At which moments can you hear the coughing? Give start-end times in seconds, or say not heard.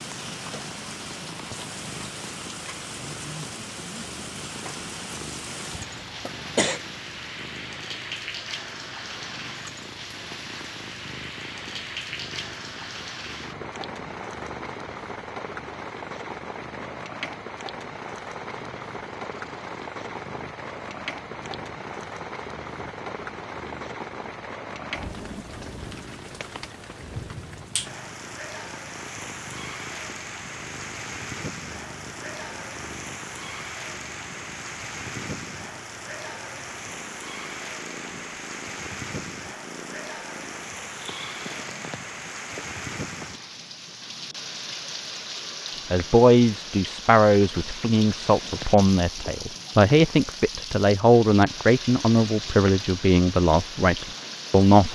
5.7-6.8.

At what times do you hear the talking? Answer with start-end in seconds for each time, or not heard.
45.9-54.9.